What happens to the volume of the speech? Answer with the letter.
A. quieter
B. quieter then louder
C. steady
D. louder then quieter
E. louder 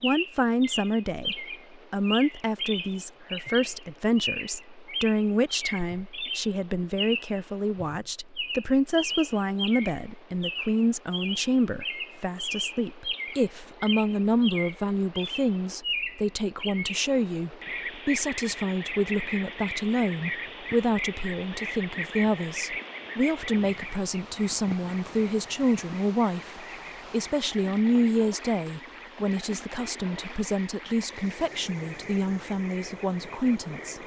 C.